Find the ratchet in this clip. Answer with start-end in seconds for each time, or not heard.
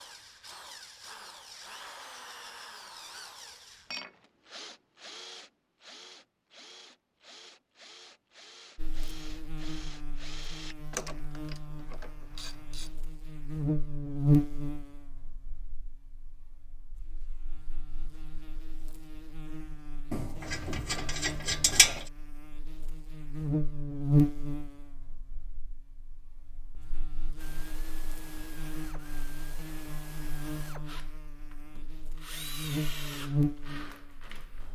10.9-12.9, 20.1-22.1.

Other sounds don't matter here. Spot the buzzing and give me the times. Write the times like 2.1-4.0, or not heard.
8.8-34.5.